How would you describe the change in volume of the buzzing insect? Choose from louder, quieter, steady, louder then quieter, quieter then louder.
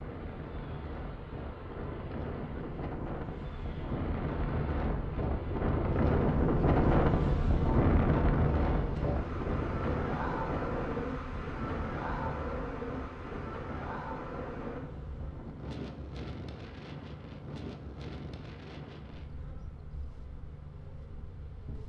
louder then quieter.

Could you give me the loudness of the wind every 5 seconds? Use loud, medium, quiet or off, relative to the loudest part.
medium, loud, medium, quiet, quiet.